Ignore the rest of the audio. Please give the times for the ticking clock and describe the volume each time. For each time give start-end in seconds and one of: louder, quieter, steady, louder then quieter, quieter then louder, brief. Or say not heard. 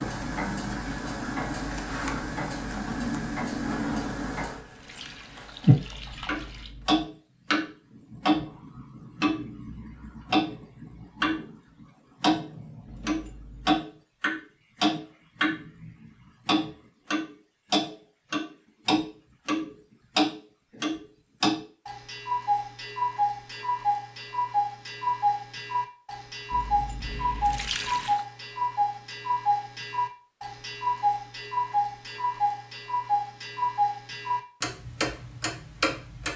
0.0-36.3 steady.